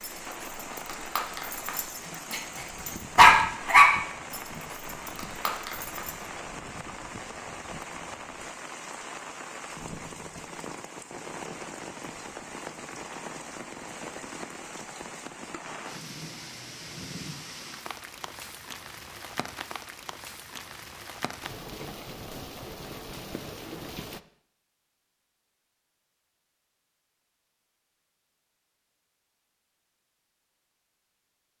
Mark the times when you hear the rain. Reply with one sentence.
You can hear the rain from 0.0 to 24.2 s.